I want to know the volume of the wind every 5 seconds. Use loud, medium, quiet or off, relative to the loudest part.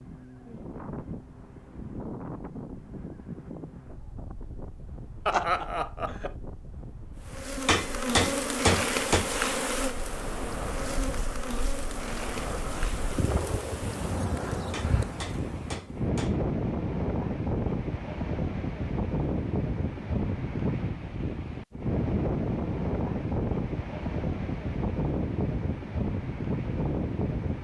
medium, quiet, medium, loud, loud, loud.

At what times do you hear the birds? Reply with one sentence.
You can't hear the birds here.